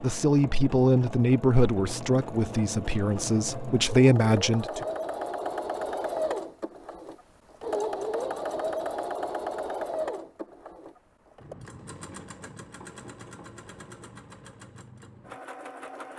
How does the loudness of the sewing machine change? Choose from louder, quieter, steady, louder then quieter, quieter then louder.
louder then quieter.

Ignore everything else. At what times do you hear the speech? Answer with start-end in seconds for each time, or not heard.
0.0-4.7.